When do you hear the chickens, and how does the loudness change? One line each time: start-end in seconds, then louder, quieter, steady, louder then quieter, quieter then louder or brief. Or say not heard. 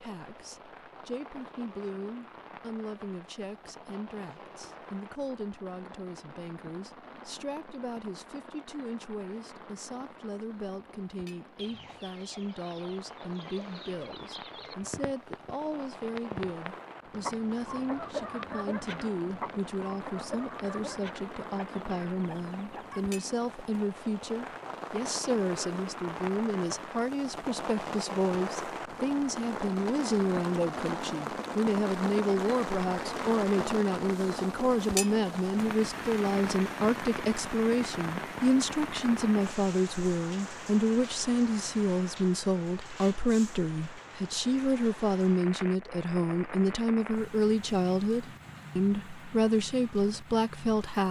11.6-15.6 louder
16.1-23.1 quieter.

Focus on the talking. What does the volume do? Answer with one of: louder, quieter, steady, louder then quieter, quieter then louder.
louder.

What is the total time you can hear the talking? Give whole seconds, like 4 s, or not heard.
51 s.